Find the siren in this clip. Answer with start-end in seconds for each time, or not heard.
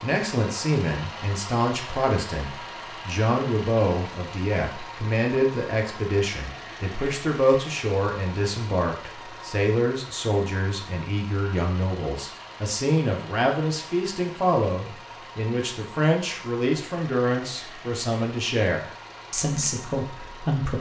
not heard.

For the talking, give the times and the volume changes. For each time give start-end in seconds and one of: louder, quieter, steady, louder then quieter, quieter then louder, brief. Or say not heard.
0.0-20.7 steady.